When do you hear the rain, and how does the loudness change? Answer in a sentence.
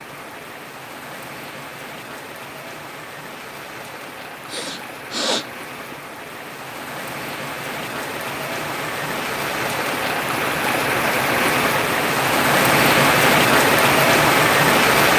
You can hear the rain from 0.0 to 15.1 s, getting louder.